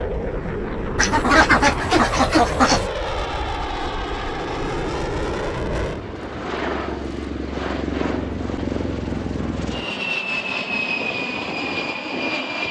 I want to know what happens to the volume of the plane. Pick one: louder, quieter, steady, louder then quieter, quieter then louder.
steady.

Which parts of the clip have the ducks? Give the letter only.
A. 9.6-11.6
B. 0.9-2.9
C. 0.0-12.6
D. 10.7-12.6
B.